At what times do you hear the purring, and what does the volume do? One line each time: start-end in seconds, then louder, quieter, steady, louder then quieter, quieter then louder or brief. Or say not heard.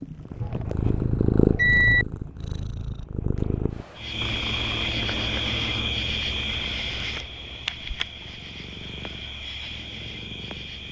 0.0-10.8 quieter.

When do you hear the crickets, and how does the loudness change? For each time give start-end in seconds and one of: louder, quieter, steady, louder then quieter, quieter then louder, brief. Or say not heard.
4.0-10.8 quieter.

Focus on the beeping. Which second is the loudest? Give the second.
2 s.